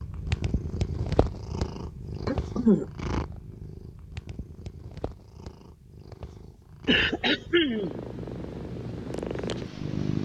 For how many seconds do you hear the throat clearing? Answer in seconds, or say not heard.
2 s.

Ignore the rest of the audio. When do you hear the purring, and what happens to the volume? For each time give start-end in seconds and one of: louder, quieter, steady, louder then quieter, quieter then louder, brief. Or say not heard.
0.0-10.2 quieter then louder.